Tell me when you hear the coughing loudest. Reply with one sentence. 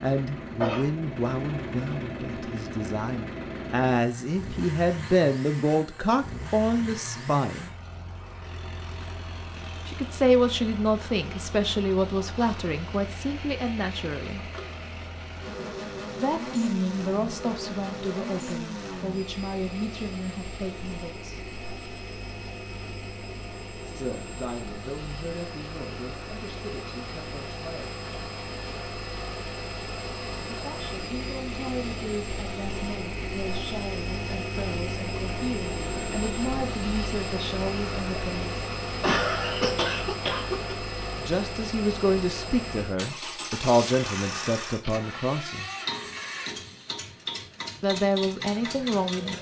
The volume of the coughing peaks at 39 seconds.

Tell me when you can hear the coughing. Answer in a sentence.
The coughing can be heard from 0.1 to 0.9 s and from 39.0 to 40.8 s.